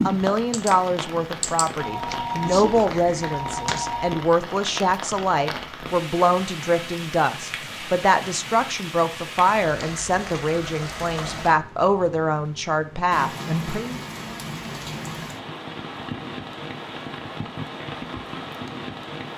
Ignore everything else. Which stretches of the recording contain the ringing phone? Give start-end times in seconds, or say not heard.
1.8-4.2.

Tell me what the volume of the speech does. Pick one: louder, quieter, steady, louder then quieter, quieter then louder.
steady.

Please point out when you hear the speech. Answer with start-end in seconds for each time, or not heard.
0.0-13.9.